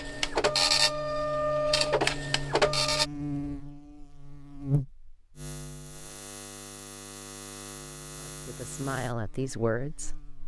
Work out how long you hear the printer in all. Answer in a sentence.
The printer can be heard for 3 seconds in total.